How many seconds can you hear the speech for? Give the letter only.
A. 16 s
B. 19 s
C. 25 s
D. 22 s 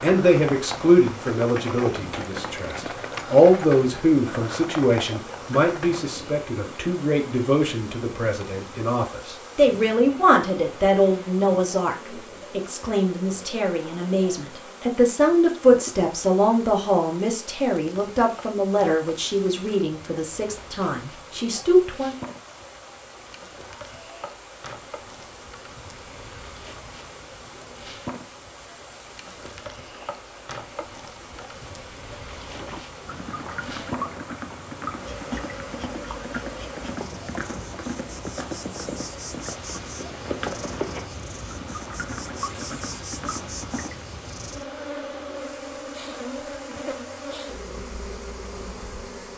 D.